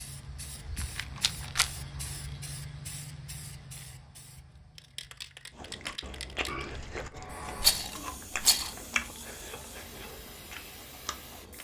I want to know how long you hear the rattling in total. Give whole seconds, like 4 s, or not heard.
2 s.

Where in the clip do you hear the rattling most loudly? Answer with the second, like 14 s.
8 s.